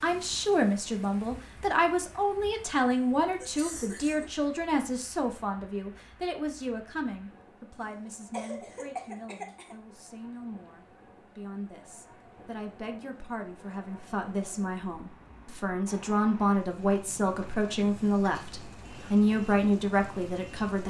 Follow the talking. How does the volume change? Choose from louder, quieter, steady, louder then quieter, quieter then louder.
quieter then louder.